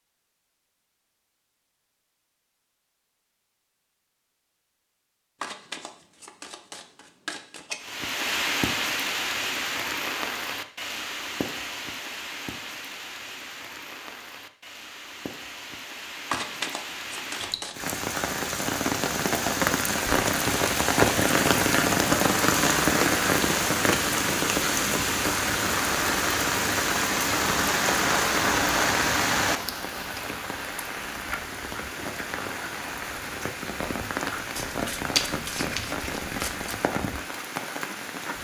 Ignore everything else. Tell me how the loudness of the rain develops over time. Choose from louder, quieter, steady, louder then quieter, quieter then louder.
louder then quieter.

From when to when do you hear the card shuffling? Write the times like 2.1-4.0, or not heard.
5.4-8.0, 16.3-17.9, 34.5-36.8.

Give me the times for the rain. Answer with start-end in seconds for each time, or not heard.
7.8-38.3.